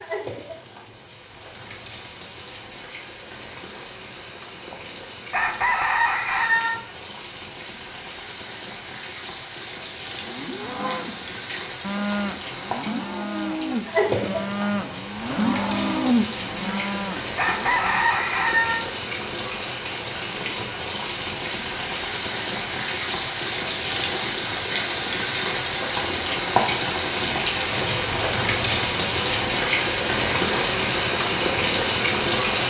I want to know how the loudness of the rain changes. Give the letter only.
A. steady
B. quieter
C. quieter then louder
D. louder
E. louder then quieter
D.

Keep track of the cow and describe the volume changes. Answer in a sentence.
The volume of the cow goes up.